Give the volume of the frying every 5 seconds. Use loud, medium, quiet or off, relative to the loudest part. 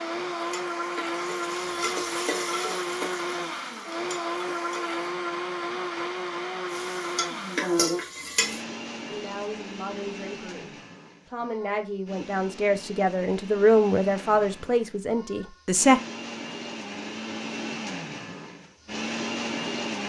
medium, loud, off, off.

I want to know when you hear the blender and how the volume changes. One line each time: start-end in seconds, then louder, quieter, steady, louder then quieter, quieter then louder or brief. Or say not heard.
0.0-20.0 quieter then louder.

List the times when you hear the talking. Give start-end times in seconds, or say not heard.
9.1-16.0.